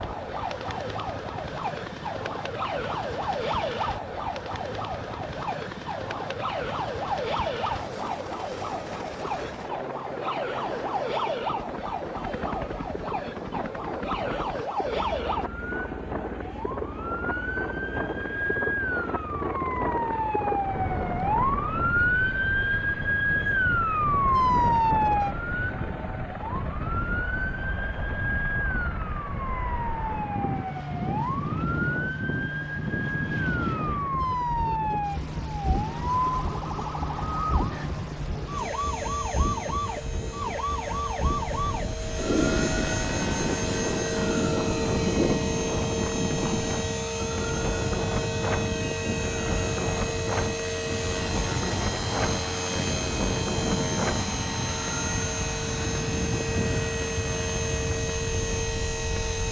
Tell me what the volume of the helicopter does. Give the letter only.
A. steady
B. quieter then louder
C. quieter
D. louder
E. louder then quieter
D.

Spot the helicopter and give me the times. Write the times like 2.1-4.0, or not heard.
0.0-59.4.